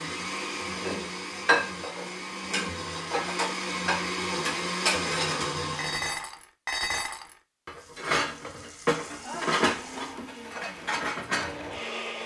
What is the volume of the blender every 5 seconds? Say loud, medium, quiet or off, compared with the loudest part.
loud, loud, medium.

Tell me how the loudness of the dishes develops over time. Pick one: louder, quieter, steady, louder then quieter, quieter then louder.
steady.